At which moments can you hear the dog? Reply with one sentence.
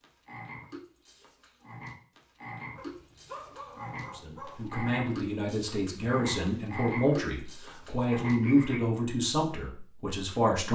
You can hear the dog from 2.8 to 4.7 s.